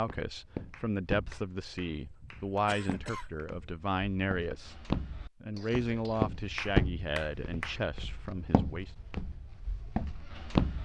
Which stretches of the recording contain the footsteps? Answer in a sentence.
The footsteps can be heard from 0.0 to 10.8 s.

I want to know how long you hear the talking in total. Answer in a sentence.
The talking can be heard for 9 seconds in total.